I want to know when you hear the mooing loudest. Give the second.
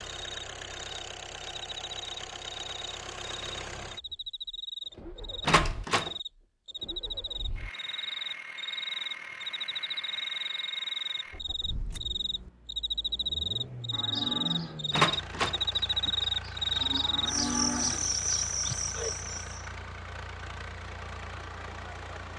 18 s.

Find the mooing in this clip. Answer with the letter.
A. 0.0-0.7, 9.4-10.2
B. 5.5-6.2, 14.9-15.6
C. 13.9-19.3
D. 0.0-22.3
C.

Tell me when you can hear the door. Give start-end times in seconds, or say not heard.
5.5-6.2, 14.9-15.6.